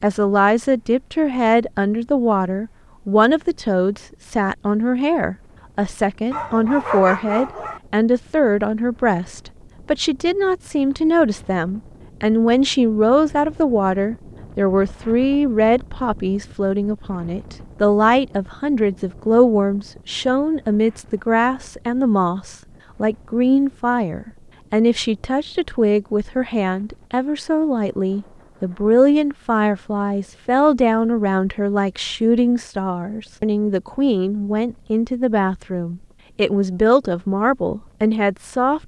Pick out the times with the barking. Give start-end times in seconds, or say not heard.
6.3-7.8.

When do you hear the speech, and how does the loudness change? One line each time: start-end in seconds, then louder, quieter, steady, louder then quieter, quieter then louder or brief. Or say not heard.
0.0-38.8 steady.